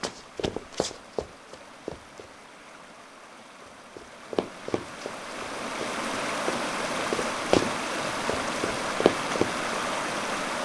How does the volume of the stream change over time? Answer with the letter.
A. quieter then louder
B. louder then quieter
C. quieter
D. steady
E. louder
E.